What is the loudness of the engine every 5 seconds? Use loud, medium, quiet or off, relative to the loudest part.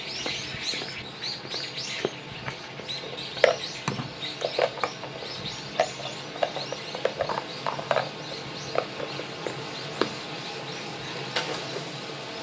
medium, loud, loud.